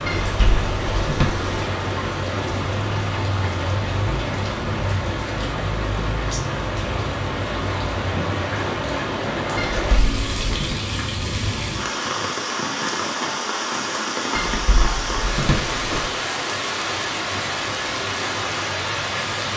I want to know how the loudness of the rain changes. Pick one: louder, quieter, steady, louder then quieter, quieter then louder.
steady.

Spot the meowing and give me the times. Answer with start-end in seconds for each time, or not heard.
0.1-1.6, 9.6-10.8, 14.3-16.1.